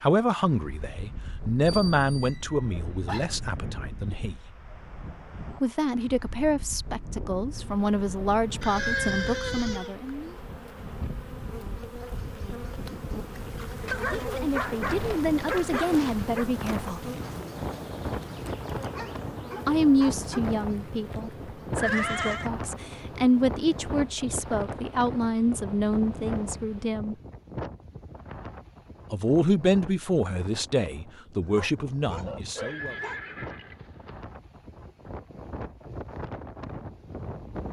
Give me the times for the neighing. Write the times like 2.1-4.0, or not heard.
8.6-9.9, 21.8-22.5, 32.5-34.2.